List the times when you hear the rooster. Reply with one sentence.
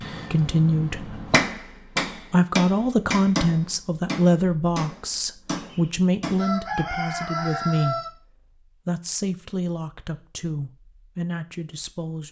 The rooster can be heard from 5.5 to 8.1 s.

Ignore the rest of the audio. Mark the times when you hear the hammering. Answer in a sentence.
The hammering can be heard from 0.0 to 6.5 s.